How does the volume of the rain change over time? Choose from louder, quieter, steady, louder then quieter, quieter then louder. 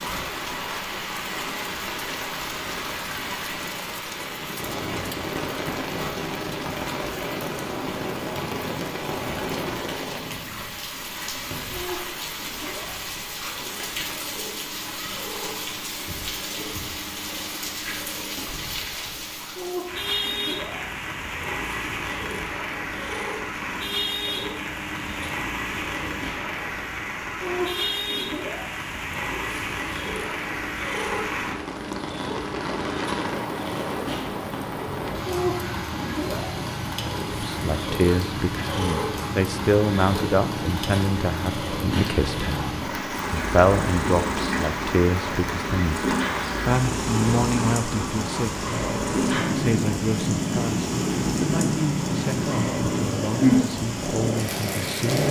steady.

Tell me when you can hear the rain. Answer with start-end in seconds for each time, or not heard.
0.0-55.2.